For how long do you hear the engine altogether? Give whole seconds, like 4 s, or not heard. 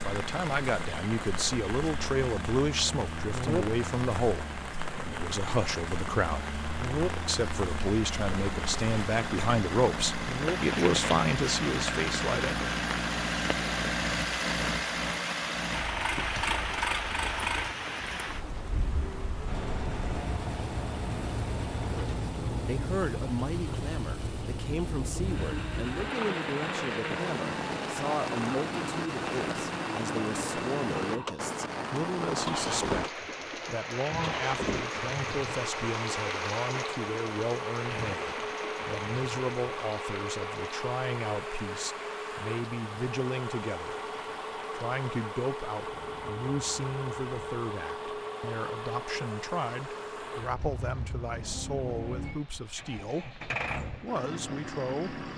55 s.